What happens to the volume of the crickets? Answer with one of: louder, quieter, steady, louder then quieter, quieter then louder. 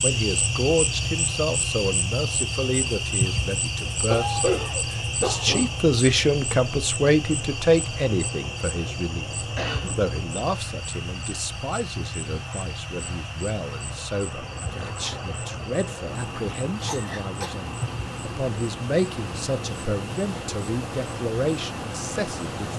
quieter.